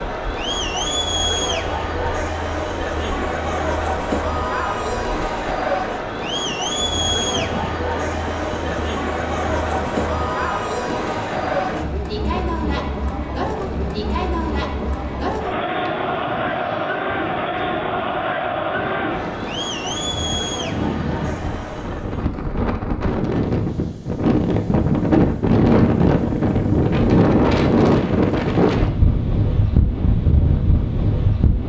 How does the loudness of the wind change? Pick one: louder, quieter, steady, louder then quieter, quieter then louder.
louder.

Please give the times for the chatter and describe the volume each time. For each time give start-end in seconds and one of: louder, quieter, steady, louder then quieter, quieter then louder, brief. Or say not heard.
0.0-22.3 steady.